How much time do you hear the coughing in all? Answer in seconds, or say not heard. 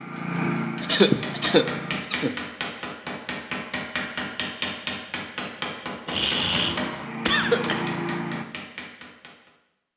3 s.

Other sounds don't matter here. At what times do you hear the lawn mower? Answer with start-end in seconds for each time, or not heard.
0.0-2.0, 6.3-8.4.